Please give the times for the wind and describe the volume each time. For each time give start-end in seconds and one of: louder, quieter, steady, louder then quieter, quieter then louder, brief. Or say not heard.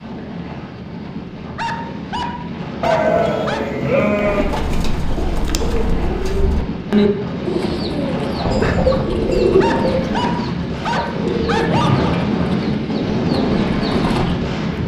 0.0-14.8 louder.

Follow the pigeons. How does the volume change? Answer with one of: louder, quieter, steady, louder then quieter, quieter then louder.
louder then quieter.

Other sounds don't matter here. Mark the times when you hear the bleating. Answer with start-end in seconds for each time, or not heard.
2.8-4.6, 8.4-10.2.